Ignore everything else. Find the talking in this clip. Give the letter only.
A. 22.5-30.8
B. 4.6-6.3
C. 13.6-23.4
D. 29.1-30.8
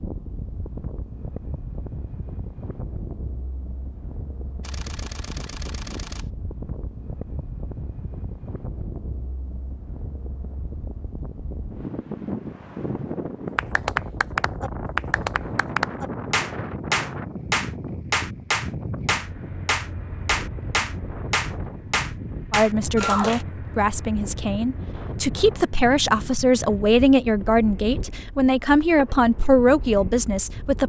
A.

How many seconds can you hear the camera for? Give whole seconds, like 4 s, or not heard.
2 s.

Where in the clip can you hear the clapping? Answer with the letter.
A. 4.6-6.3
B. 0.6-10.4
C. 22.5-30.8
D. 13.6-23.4
D.